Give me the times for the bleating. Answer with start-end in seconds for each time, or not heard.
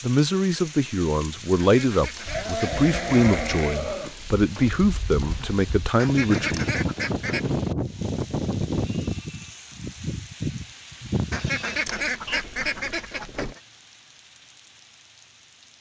2.2-12.4.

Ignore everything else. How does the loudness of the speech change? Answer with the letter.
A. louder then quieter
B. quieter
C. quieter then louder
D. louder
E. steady
E.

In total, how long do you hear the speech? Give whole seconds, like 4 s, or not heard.
7 s.